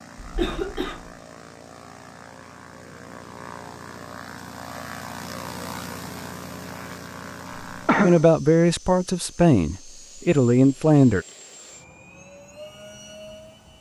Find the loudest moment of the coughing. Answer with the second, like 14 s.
8 s.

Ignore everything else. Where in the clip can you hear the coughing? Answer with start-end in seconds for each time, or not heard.
0.1-1.1, 7.8-8.2.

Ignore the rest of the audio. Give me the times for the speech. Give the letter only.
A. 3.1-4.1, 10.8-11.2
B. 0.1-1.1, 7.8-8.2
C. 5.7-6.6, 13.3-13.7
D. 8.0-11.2
D.